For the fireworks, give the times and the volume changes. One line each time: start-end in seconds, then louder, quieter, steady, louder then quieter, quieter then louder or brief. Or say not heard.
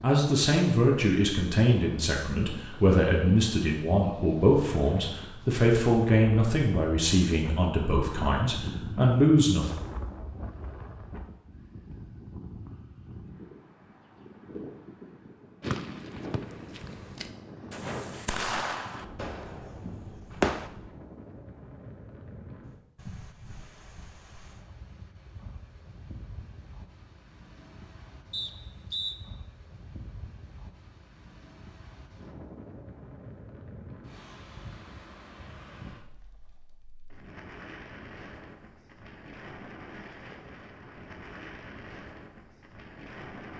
15.6-20.7 louder then quieter.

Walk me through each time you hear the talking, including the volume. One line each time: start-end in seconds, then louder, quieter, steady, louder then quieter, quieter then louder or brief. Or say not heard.
0.0-9.7 steady.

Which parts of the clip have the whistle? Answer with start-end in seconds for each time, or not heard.
15.7-16.4, 28.3-29.1.